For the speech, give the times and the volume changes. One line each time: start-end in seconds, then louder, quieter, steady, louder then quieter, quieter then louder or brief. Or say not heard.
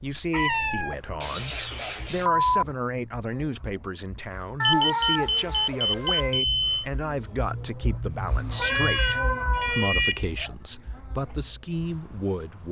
0.0-12.6 steady.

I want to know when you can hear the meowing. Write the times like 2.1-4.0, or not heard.
0.3-1.0, 4.6-6.4, 8.6-10.6.